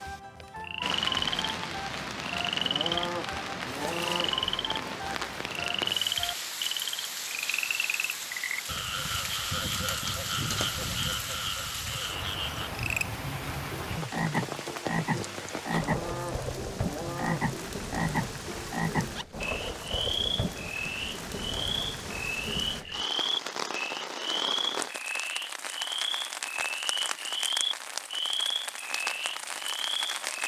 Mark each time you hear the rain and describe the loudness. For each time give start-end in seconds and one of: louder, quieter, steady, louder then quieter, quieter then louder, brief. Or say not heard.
0.0-30.4 steady.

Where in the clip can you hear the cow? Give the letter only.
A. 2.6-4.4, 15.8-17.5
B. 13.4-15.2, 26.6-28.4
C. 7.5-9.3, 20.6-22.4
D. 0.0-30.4
A.